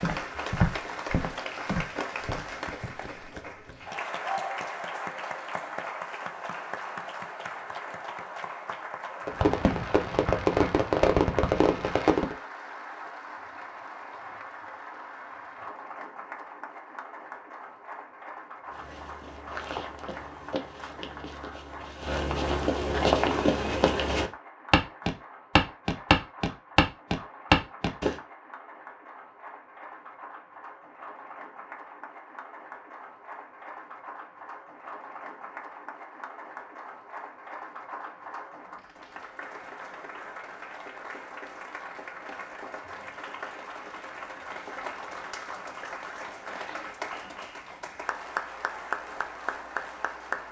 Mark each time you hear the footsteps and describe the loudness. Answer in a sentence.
The footsteps can be heard briefly from 0.0 to 3.0 s; and from 18.7 to 28.1 s, getting louder.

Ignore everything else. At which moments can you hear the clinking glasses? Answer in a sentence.
The clinking glasses can't be heard in this clip.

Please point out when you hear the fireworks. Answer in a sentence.
The fireworks can be heard from 9.2 to 12.3 s.